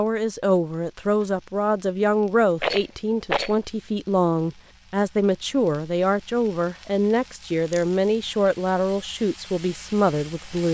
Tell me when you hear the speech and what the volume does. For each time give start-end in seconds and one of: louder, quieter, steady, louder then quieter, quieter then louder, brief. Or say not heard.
0.0-10.6 steady.